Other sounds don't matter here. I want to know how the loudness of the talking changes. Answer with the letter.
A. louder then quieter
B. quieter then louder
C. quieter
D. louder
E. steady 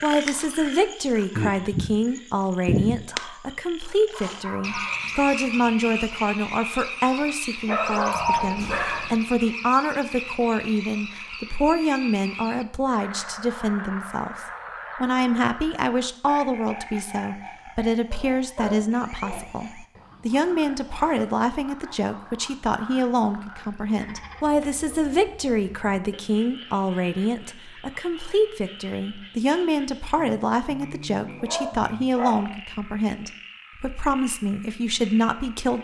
E.